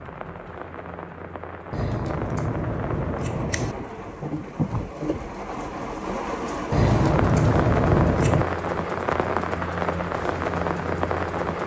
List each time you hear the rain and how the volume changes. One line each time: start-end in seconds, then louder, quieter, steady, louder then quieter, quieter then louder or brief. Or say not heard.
0.0-11.6 louder.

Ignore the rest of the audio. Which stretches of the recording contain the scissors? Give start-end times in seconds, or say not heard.
1.7-3.8, 6.7-8.4.